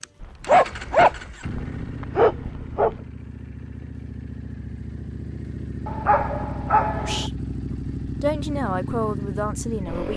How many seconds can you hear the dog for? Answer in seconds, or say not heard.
4 s.